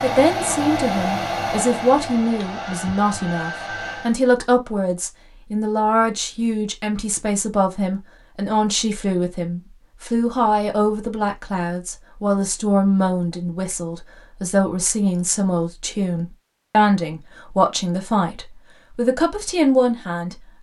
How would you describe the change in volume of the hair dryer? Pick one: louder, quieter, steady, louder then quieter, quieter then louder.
quieter.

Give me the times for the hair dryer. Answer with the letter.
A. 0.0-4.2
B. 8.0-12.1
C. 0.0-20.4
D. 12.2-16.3
A.